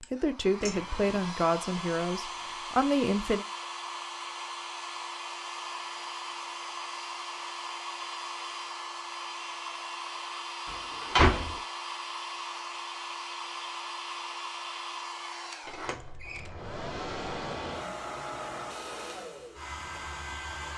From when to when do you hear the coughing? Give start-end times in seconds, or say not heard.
not heard.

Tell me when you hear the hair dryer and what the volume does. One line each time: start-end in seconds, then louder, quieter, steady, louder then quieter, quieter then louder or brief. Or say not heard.
0.0-20.7 steady.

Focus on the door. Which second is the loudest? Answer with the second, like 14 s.
11 s.